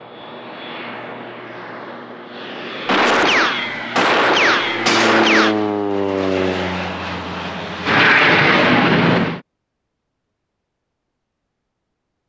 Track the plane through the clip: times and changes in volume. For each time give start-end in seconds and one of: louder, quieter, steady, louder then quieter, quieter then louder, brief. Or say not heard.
0.0-9.4 louder.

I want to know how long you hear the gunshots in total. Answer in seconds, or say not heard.
3 s.